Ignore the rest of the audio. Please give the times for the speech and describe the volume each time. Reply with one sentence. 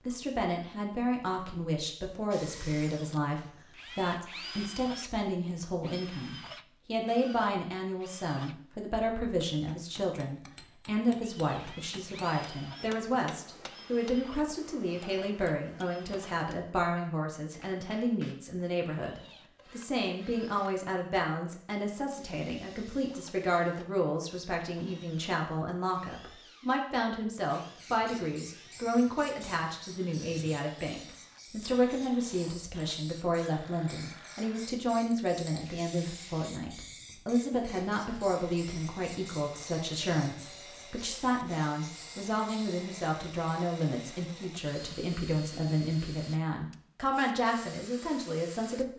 You can hear the speech from 0.1 to 48.9 s, at a steady volume.